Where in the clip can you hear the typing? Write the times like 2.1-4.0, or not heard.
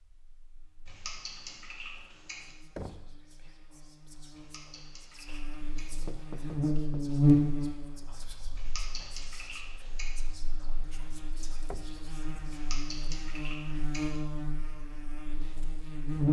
0.8-2.5, 4.3-6.0, 8.6-10.2, 12.5-14.2.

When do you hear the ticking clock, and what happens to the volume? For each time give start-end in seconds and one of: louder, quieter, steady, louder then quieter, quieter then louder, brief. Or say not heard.
not heard.